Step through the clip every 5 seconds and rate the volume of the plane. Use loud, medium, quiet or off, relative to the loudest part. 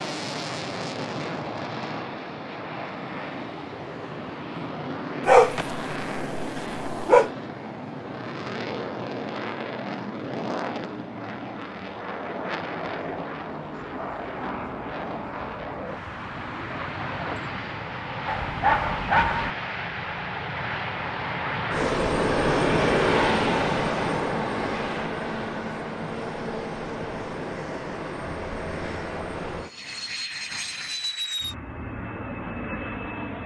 medium, medium, medium, medium, loud, medium, medium.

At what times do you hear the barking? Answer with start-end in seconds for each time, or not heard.
5.2-7.3, 18.2-19.5.